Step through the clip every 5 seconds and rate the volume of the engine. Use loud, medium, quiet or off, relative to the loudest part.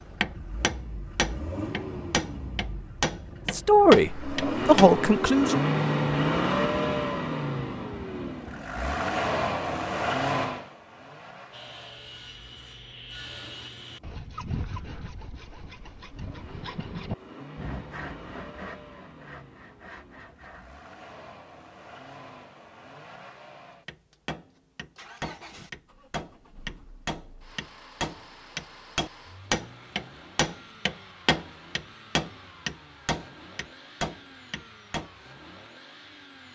medium, loud, medium, quiet, quiet, quiet, quiet, quiet.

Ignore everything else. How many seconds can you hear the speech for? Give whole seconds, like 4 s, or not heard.
2 s.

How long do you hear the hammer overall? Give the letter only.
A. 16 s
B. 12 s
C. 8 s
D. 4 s
A.